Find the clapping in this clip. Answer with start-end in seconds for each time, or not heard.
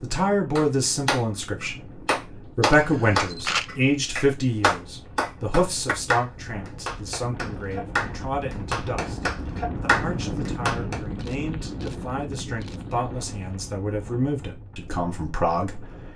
0.6-11.0.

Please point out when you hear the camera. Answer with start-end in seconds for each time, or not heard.
2.7-3.7, 11.1-12.8.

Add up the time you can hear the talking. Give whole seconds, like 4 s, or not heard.
16 s.